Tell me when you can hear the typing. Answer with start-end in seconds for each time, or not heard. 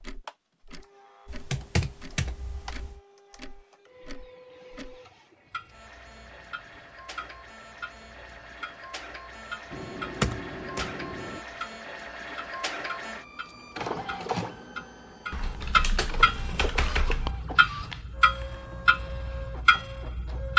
1.2-3.0, 9.7-11.4, 15.3-17.4.